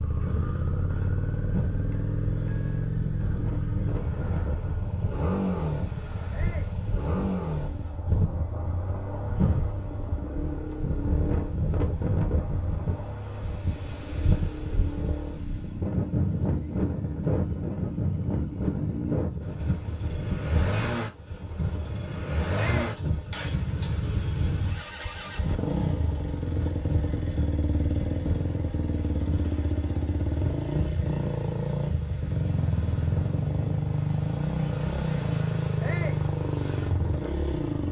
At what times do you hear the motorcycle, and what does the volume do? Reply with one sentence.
The motorcycle can be heard from 0.0 to 37.8 s, getting quieter then louder.